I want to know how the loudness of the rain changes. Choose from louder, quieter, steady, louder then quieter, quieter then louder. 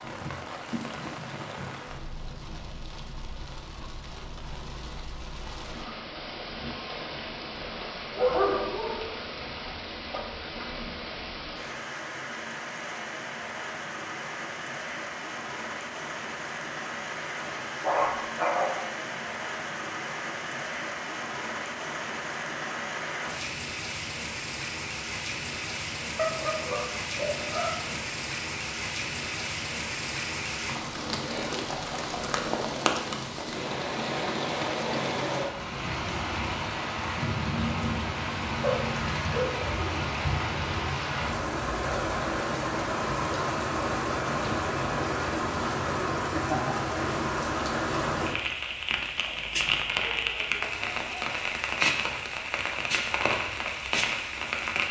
louder.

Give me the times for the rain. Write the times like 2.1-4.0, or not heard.
0.0-54.8.